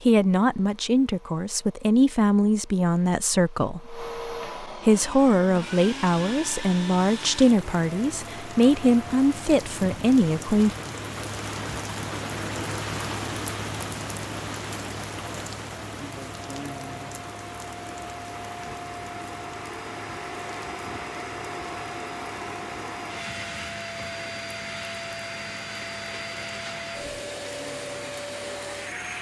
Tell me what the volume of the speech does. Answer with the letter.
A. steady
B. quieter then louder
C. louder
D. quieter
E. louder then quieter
A.